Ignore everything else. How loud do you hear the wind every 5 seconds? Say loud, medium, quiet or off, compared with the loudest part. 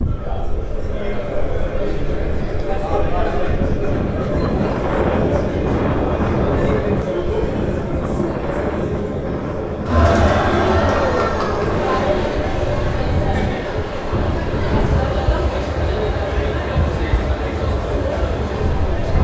loud, loud, loud, medium.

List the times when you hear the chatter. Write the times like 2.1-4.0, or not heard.
0.0-19.1.